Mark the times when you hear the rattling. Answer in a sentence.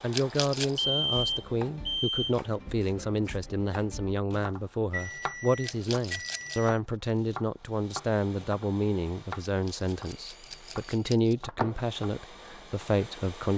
You can hear the rattling from 0.1 to 0.8 s, from 5.6 to 6.6 s and from 9.4 to 11.3 s.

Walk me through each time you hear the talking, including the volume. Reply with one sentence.
You can hear the talking from 0.0 to 13.5 s, at a steady volume.